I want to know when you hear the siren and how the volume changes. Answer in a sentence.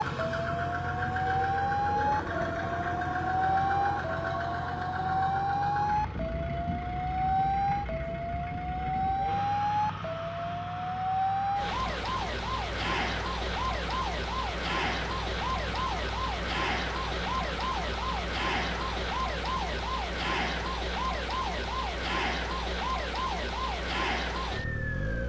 The siren can be heard from 0.0 to 25.2 s, at a steady volume.